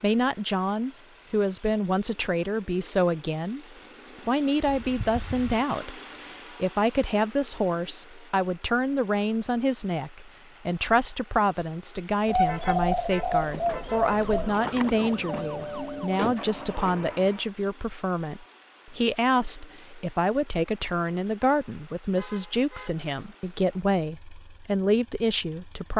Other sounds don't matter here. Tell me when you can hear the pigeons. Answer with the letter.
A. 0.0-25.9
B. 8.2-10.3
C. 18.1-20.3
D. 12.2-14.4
D.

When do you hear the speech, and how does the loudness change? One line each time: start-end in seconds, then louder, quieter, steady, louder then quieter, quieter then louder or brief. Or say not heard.
0.0-25.9 steady.